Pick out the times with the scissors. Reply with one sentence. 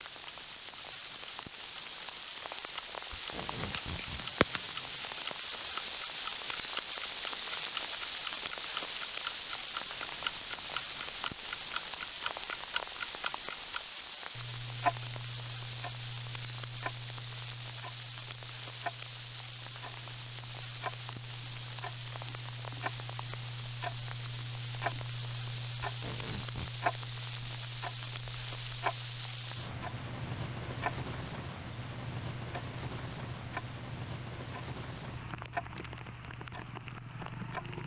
The scissors can be heard from 3.6 to 5.1 s.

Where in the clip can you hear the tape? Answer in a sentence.
The tape can be heard from 3.1 to 4.2 s and from 25.8 to 26.7 s.